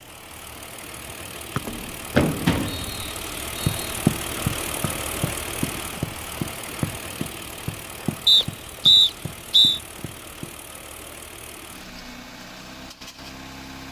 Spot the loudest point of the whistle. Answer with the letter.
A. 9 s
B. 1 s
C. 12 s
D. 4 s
A.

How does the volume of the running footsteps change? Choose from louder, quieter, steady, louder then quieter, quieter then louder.
quieter.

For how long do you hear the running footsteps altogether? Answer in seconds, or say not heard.
9 s.